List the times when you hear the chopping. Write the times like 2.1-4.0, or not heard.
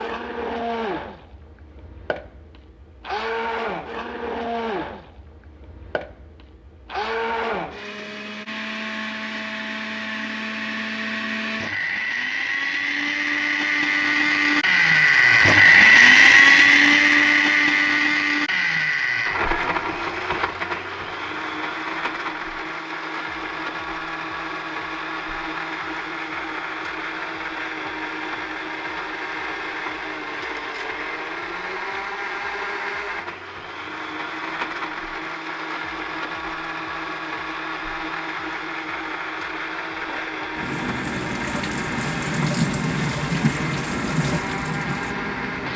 not heard.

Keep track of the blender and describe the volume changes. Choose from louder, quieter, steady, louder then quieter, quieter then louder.
louder then quieter.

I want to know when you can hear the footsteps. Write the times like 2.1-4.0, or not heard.
not heard.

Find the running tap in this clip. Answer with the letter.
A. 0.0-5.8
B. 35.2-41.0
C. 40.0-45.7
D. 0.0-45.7
C.